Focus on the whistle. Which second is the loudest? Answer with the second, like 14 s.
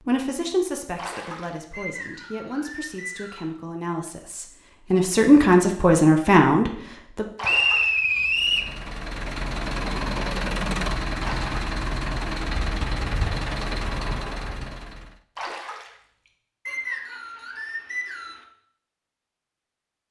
8 s.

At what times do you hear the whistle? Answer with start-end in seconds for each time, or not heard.
1.7-3.5, 7.4-8.7, 16.6-18.4.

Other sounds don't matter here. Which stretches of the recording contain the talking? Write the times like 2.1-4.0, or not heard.
0.1-7.2.